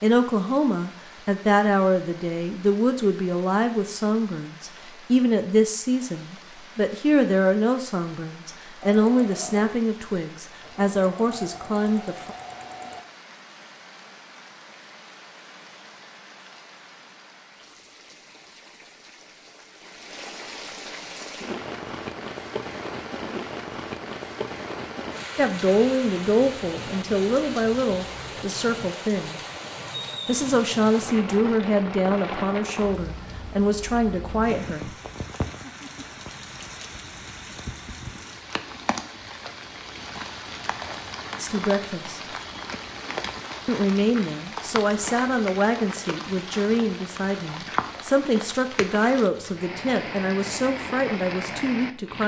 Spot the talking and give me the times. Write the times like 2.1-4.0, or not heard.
0.0-12.3, 25.4-29.4, 30.2-34.9, 41.4-42.2, 43.6-52.2.